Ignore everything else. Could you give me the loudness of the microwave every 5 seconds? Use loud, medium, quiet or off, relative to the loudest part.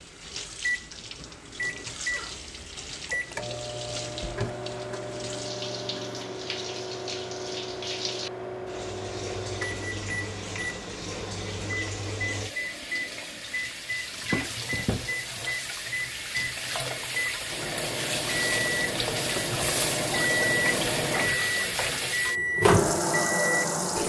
medium, medium, medium, medium, loud.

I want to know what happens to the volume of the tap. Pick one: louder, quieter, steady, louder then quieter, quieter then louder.
louder.